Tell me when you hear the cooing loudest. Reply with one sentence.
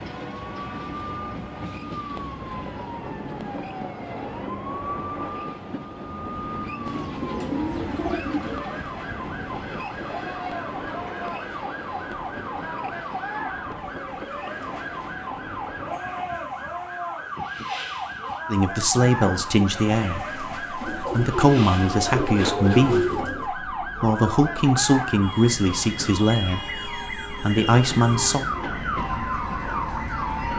The volume of the cooing peaks at 23 seconds.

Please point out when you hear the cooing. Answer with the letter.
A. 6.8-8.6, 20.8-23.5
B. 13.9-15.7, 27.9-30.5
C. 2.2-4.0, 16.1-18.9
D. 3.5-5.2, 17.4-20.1
A.